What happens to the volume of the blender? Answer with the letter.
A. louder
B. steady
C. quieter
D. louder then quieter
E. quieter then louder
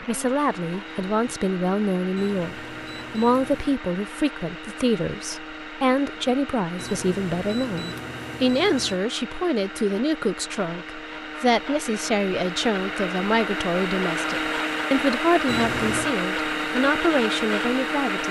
A.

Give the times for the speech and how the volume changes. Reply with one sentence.
You can hear the speech from 0.0 to 18.2 s, at a steady volume.